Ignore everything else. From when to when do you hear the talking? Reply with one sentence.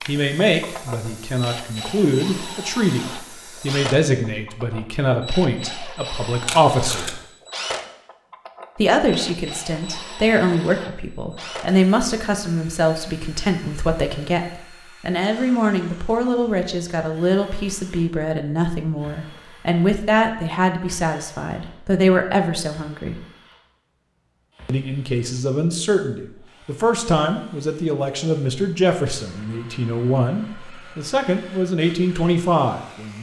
The talking can be heard from 0.1 to 7.2 s, from 8.8 to 23.2 s and from 24.6 to 33.1 s.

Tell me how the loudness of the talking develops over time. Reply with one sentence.
The loudness of the talking stays about the same.